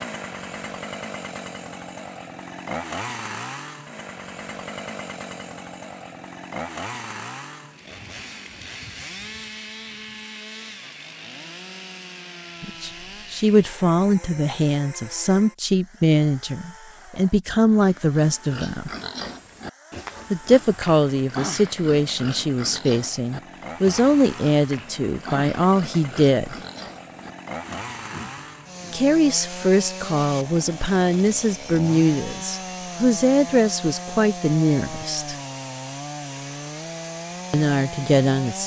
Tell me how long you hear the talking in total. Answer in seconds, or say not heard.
20 s.